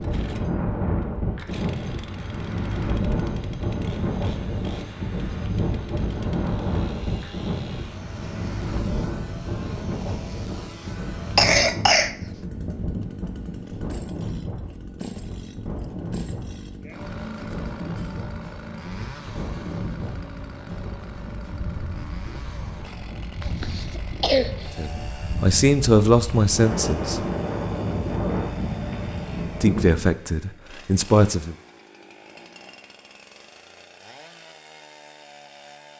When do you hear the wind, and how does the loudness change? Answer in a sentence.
You can hear the wind from 0.0 to 30.1 s, getting quieter then louder.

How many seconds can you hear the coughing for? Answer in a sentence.
The coughing can be heard for 2 seconds in total.